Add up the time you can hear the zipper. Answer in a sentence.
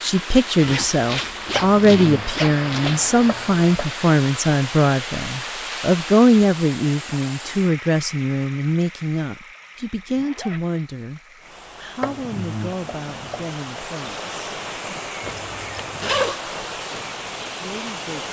You can hear the zipper for 4 seconds altogether.